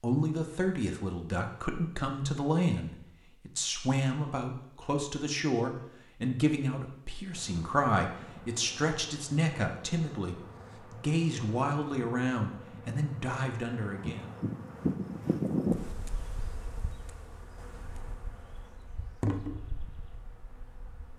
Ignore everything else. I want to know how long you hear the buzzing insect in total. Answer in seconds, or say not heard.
14 s.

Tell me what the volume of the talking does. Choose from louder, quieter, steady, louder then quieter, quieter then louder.
steady.